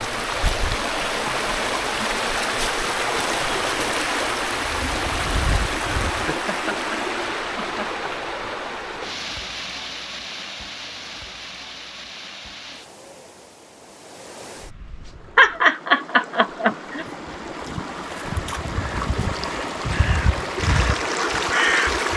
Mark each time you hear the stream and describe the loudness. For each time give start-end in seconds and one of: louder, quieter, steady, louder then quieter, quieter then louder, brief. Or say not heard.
0.0-22.1 quieter then louder.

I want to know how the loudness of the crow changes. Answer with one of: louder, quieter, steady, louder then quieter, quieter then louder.
louder.